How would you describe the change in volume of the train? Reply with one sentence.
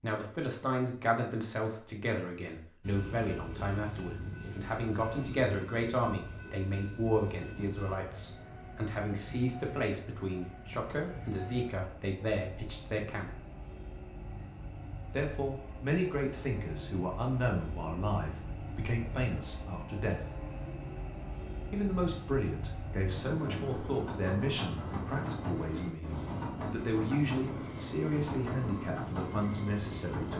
The loudness of the train goes up.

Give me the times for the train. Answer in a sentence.
The train can be heard from 2.8 to 30.3 s.